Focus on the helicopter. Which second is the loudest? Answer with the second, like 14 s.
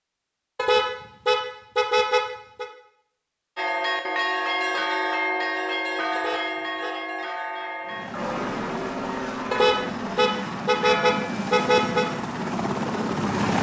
13 s.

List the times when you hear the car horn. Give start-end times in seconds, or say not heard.
0.6-2.6, 6.2-7.0, 9.5-12.1.